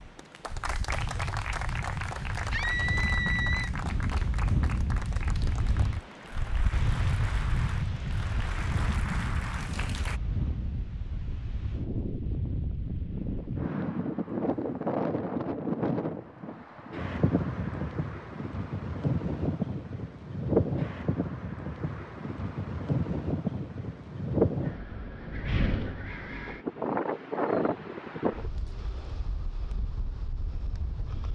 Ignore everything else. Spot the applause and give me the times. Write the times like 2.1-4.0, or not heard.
0.1-10.2.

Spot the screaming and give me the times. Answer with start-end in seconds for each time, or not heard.
2.5-3.7.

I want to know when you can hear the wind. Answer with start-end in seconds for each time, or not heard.
0.0-31.3.